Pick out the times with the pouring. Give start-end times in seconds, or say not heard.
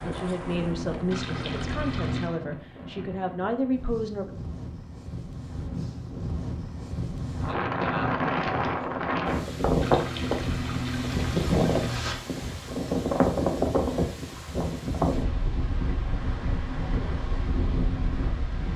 1.1-2.4, 9.8-12.2.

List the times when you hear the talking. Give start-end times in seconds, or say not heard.
0.0-4.2.